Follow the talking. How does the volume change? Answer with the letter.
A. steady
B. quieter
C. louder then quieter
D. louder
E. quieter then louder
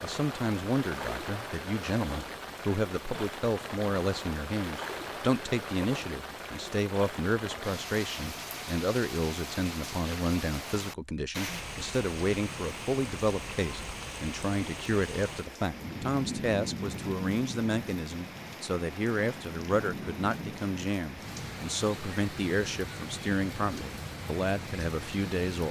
A.